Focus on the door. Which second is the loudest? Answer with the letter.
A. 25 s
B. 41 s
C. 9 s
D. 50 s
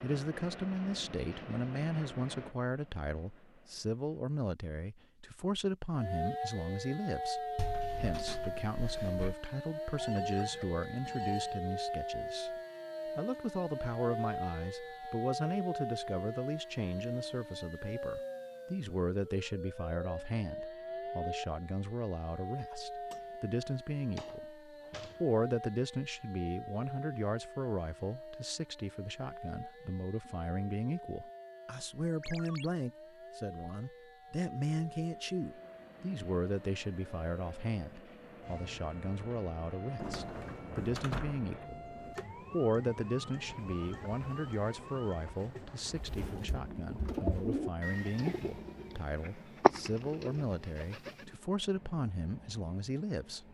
B.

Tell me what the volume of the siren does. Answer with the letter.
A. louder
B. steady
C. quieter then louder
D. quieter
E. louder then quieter
D.